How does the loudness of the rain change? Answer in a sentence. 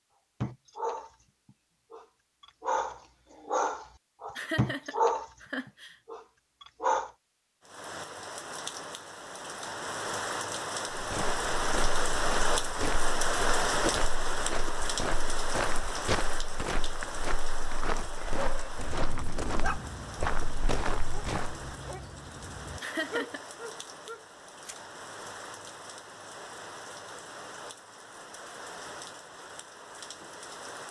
The loudness of the rain goes down.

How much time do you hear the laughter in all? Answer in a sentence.
The laughter can be heard for 2 seconds in total.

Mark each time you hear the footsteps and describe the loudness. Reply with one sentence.
You can hear the footsteps from 10.9 to 21.6 s, at a steady volume.